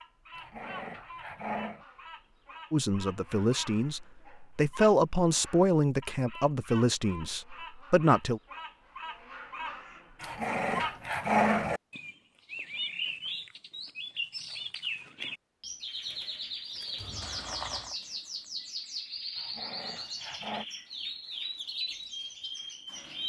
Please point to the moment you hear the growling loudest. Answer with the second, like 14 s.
11 s.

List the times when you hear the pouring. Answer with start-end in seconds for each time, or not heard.
16.9-17.9.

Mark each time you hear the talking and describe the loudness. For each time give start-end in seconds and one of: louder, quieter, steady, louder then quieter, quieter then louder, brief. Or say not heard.
2.7-8.4 louder then quieter.